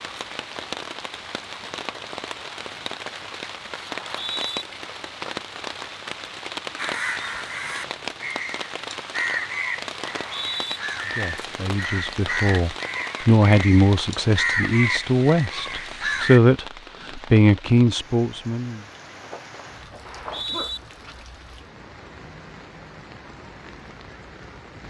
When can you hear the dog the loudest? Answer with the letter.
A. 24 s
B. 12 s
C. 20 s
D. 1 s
C.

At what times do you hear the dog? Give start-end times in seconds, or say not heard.
19.2-20.8.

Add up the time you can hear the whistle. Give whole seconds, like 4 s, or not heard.
2 s.